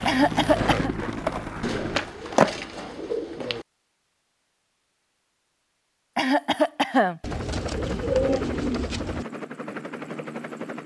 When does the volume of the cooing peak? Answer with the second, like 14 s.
8 s.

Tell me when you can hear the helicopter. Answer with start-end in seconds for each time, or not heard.
0.0-2.0, 7.2-10.8.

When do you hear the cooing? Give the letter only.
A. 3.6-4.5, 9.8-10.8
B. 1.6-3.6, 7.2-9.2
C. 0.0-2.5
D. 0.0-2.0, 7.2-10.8
B.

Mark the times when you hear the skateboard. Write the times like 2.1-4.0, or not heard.
0.0-2.5.